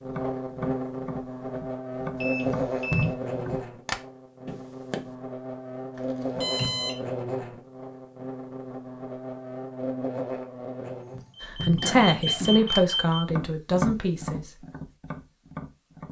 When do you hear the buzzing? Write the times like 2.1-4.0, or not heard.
0.0-11.2.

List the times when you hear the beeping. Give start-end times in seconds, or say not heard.
2.2-3.1, 6.0-7.0, 11.3-13.2.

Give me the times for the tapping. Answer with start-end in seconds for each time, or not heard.
0.0-5.2, 12.7-16.0.